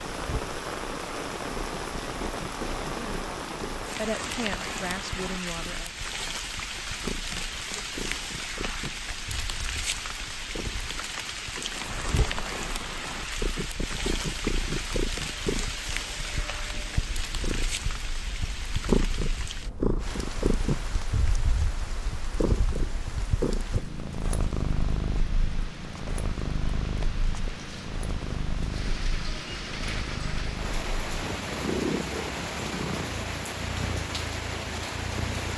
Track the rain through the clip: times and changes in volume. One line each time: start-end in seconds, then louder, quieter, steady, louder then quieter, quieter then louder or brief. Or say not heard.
0.0-35.5 quieter then louder.